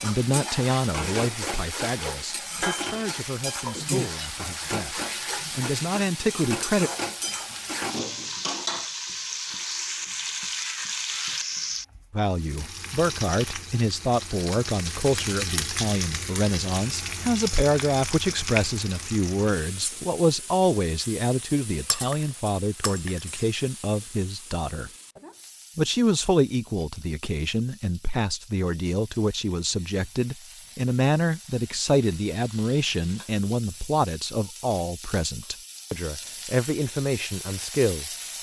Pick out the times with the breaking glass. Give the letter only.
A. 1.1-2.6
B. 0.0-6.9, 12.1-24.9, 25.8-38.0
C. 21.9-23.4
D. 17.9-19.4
C.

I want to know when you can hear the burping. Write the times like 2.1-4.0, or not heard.
not heard.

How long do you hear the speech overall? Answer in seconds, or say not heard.
32 s.